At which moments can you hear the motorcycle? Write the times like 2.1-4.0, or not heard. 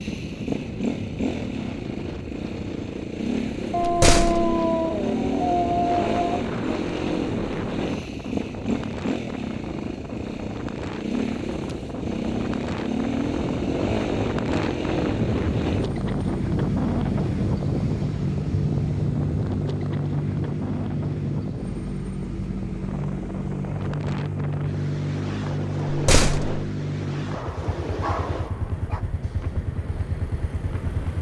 0.0-31.1.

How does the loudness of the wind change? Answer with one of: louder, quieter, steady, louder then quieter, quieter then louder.
louder then quieter.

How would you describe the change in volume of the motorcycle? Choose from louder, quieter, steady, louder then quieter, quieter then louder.
steady.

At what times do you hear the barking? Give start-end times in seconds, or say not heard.
3.7-6.5, 27.3-29.0.